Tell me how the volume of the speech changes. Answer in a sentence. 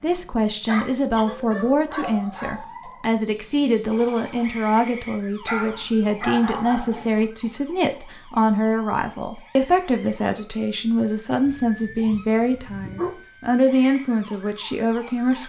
The volume of the speech stays about the same.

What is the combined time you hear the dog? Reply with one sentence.
You can hear the dog for 5 seconds altogether.